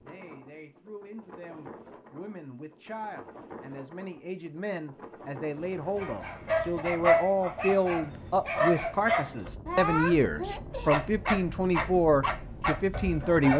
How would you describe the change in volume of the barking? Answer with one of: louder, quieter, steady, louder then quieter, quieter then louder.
quieter.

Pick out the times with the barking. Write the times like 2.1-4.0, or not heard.
6.0-13.5.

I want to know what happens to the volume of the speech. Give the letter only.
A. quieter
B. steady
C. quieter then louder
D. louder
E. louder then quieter
D.